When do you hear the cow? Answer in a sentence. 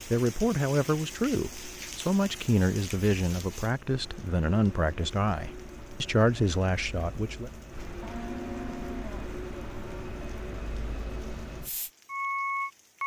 The cow can be heard from 8.0 to 10.1 s.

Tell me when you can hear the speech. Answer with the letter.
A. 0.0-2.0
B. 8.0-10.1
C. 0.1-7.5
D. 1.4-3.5
C.